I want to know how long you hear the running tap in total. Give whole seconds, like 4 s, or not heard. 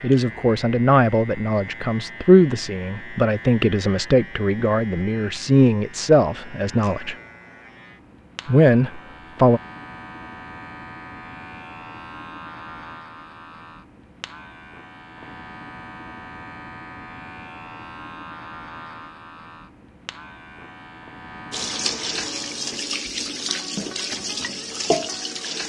4 s.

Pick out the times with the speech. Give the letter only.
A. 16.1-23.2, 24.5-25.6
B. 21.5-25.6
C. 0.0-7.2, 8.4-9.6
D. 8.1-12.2
C.